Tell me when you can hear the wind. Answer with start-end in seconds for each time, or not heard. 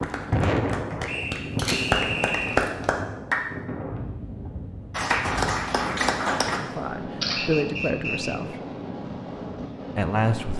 0.0-10.5.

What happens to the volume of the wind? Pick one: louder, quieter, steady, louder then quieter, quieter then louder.
quieter.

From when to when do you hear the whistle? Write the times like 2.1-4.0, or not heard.
1.1-2.7, 7.3-8.6.